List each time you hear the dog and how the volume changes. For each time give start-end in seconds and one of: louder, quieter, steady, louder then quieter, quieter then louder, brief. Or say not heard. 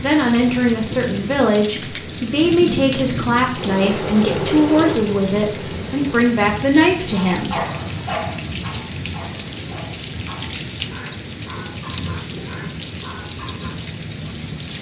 7.1-13.8 quieter.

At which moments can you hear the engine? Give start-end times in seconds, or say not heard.
3.5-6.3.